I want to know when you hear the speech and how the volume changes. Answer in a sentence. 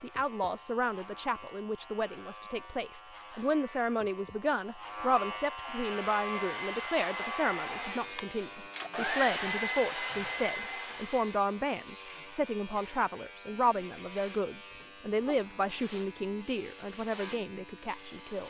You can hear the speech from 0.0 to 18.4 s, at a steady volume.